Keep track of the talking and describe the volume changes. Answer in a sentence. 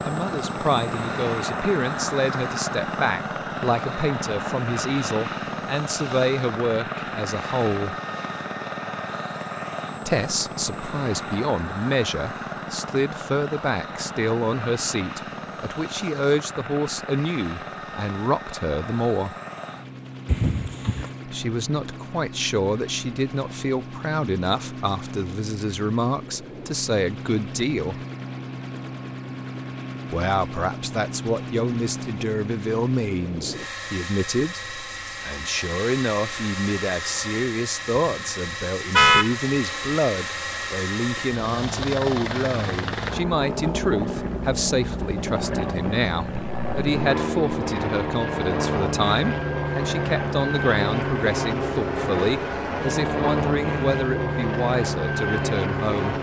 The loudness of the talking stays about the same.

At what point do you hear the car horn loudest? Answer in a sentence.
The volume of the car horn peaks at 39 seconds.